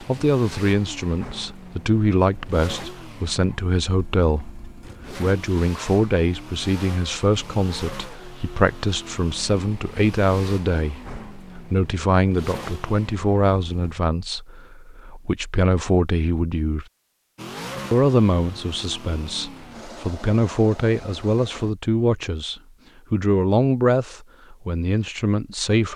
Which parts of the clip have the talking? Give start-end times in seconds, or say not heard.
0.0-16.9, 17.9-25.9.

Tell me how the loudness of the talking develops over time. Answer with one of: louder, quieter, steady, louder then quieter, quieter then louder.
steady.